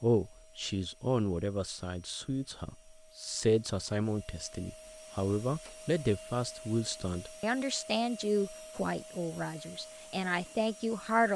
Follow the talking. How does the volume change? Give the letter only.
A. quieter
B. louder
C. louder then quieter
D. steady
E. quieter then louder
D.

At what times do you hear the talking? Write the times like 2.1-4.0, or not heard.
0.0-11.3.